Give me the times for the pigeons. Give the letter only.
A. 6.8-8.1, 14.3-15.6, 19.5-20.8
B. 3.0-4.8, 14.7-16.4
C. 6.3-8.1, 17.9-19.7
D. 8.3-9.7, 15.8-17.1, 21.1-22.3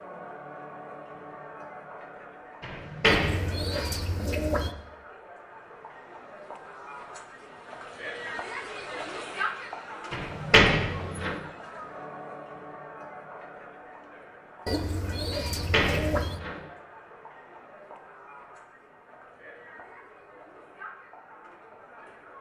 B.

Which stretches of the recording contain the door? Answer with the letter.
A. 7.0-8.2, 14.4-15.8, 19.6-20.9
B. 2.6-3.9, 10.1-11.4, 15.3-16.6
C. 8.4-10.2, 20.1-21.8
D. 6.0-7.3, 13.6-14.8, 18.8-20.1
B.